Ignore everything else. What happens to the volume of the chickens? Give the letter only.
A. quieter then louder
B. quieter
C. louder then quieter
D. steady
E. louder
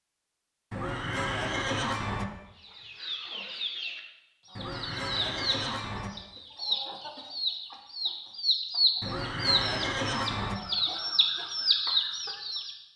E.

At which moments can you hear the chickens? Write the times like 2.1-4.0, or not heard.
2.5-12.8.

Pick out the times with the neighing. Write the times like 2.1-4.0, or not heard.
0.7-2.2, 4.5-6.1, 9.0-10.6.